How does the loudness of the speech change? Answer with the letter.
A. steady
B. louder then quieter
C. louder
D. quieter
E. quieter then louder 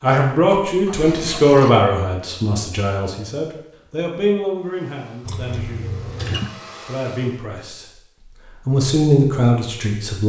E.